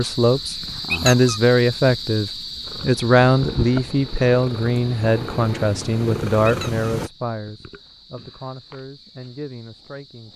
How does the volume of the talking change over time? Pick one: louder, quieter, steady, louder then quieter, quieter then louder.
quieter.